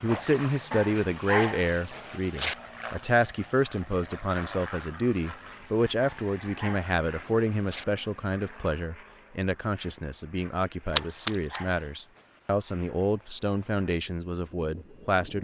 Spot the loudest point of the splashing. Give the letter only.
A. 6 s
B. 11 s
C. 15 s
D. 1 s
B.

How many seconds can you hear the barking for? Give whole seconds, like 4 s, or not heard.
5 s.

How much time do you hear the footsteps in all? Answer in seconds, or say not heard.
not heard.